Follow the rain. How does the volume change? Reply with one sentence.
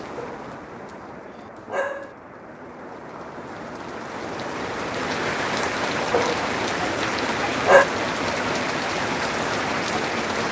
The volume of the rain goes up.